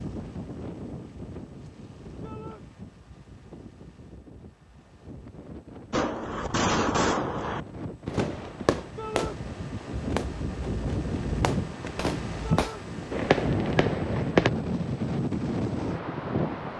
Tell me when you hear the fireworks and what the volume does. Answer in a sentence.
The fireworks can be heard from 5.9 to 14.5 s, getting quieter then louder.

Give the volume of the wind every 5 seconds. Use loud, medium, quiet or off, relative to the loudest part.
quiet, medium, loud, loud.